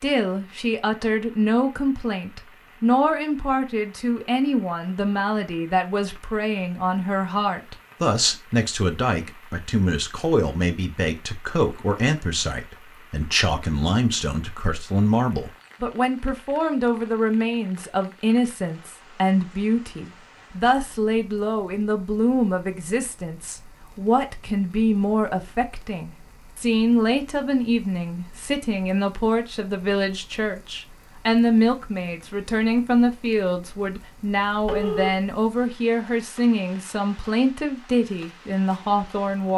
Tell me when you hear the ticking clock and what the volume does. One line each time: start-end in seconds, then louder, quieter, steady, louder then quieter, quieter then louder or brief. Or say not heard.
not heard.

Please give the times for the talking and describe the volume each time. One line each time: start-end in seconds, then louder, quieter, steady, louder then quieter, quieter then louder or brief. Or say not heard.
0.0-39.5 steady.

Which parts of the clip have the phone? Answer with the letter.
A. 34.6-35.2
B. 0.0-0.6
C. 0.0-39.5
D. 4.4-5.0
A.